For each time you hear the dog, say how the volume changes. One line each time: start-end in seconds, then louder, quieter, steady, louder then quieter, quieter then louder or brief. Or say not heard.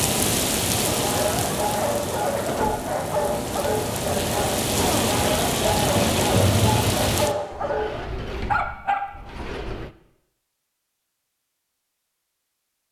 0.8-9.1 steady.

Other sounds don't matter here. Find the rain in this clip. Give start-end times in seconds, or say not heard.
0.0-7.3.